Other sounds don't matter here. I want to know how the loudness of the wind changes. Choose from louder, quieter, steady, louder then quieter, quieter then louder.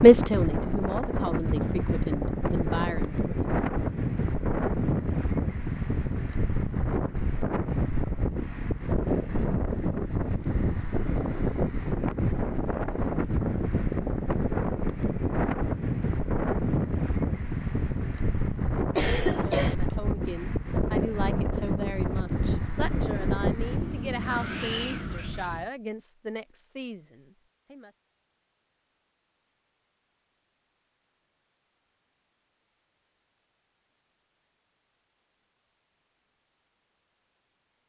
steady.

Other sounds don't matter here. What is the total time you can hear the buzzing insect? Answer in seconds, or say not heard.
not heard.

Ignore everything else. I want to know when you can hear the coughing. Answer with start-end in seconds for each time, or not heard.
18.9-19.8.